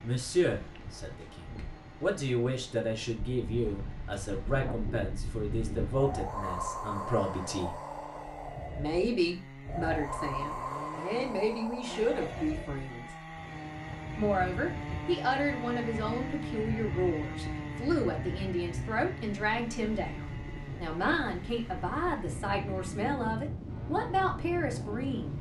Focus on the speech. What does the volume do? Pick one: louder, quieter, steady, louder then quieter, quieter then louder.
steady.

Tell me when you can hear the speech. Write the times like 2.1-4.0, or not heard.
0.0-7.8, 8.8-13.1, 14.2-25.3.